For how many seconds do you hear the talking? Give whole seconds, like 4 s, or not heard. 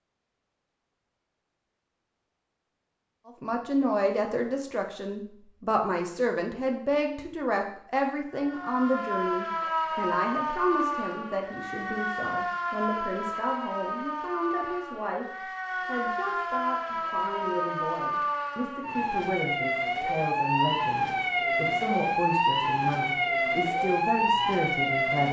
22 s.